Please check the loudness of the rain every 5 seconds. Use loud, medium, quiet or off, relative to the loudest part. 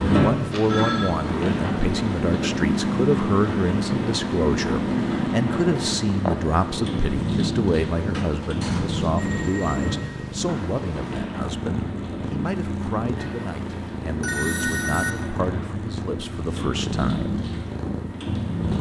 loud, loud, medium, medium.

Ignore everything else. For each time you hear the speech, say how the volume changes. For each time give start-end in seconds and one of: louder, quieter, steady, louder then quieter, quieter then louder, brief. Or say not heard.
0.1-17.4 quieter.